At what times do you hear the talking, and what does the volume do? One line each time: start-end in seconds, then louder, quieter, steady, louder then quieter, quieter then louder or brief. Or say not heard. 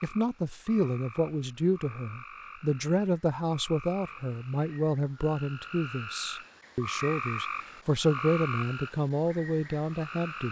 0.0-10.4 steady.